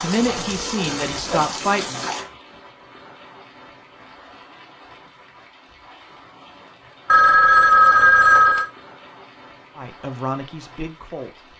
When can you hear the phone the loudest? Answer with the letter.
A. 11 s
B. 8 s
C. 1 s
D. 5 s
B.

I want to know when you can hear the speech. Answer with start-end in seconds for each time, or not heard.
0.0-2.0, 9.8-11.5.